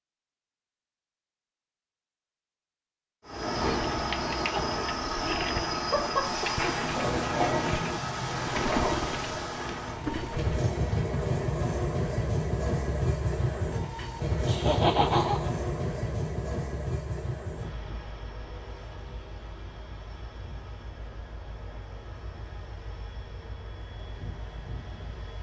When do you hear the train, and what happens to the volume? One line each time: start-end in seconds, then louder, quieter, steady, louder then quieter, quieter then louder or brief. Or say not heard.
3.2-25.3 quieter.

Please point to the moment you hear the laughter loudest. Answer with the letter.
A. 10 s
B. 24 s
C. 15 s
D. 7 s
C.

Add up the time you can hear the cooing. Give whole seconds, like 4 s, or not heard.
7 s.